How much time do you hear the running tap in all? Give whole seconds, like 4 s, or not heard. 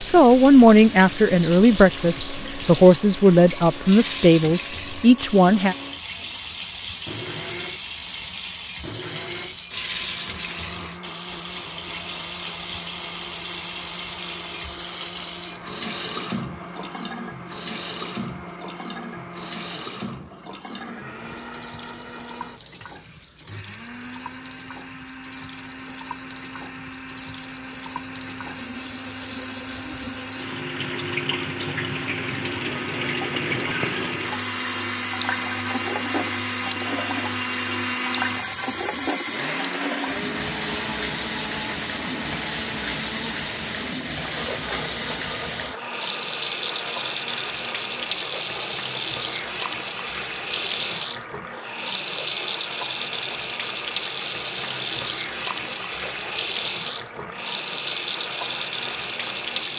60 s.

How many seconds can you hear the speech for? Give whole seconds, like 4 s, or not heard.
6 s.